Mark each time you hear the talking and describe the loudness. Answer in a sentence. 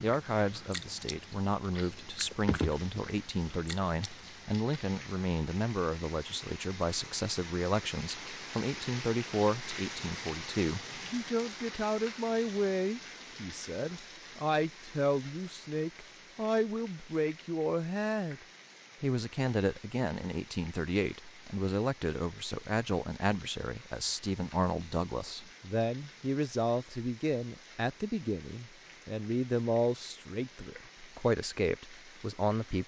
The talking can be heard from 0.0 to 18.4 s, at a steady volume; and from 19.0 to 32.8 s, at a steady volume.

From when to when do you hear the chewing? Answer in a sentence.
The chewing can be heard from 0.0 to 5.0 s.